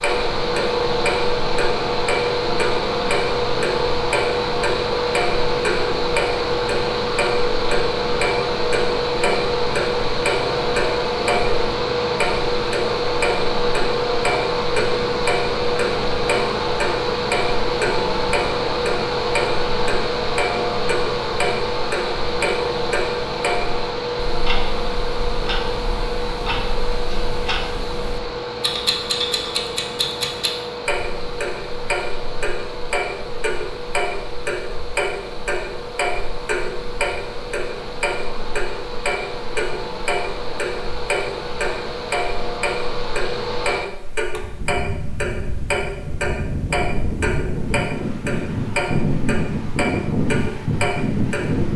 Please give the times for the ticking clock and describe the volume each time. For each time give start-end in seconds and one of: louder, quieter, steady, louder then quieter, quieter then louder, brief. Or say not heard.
0.0-51.7 steady.